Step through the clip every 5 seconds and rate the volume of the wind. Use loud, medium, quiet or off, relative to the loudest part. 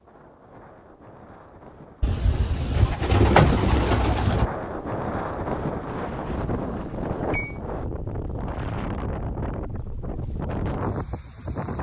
medium, loud, loud.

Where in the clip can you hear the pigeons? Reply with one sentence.
The pigeons can be heard from 2.7 to 4.5 s.